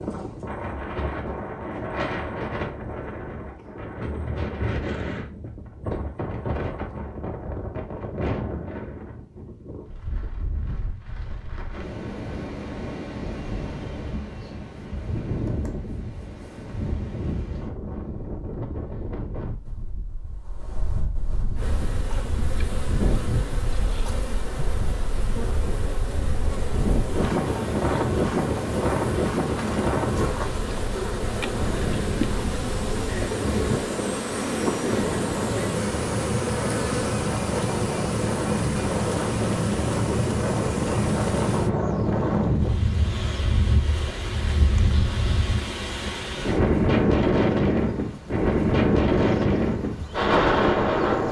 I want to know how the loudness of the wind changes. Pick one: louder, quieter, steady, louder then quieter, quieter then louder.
louder.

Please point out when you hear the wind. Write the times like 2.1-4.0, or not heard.
0.0-51.2.